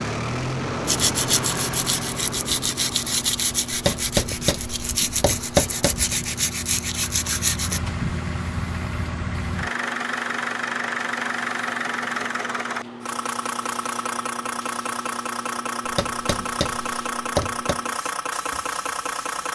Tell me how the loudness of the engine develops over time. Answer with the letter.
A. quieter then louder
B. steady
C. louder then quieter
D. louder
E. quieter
A.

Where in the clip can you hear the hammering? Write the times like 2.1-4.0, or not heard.
3.7-6.2, 15.8-17.8.